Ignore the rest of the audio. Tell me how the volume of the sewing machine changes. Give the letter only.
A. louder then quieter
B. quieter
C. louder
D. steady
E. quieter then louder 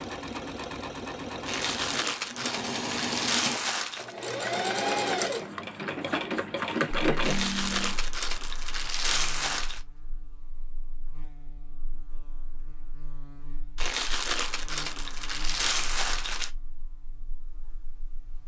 C.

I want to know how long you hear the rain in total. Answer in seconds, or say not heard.
not heard.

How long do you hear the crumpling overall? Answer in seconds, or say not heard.
8 s.